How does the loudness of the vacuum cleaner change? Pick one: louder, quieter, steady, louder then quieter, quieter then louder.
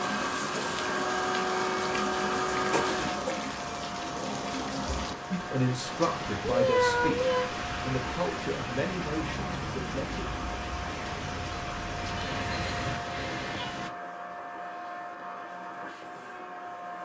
quieter.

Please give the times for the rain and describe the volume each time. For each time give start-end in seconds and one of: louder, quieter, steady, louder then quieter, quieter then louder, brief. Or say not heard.
0.0-13.9 steady.